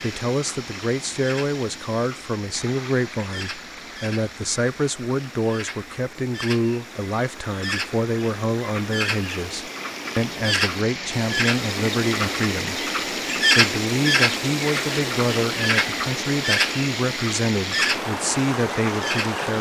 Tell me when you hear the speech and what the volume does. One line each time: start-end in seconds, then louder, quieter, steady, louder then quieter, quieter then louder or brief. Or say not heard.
0.0-19.5 steady.